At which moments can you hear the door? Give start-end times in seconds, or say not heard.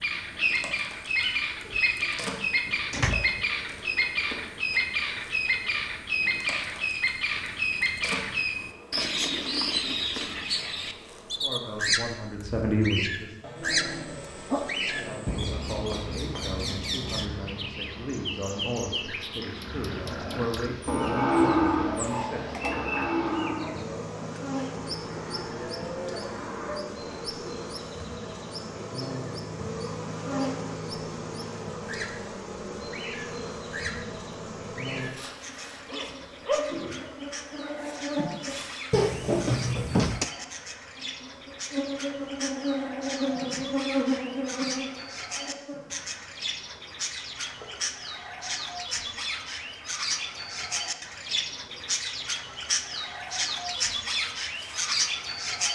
1.6-3.5, 38.9-40.2.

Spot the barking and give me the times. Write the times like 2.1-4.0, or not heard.
13.4-15.2, 35.9-36.9.